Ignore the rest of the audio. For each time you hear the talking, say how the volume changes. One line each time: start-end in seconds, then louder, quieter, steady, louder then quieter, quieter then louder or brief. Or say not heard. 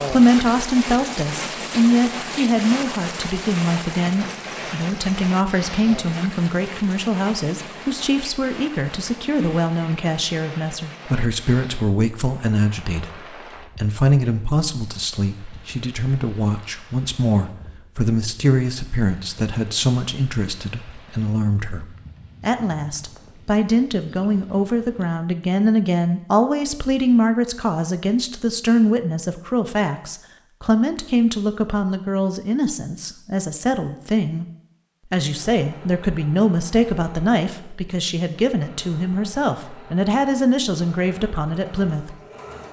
0.1-34.5 steady
35.0-42.1 steady.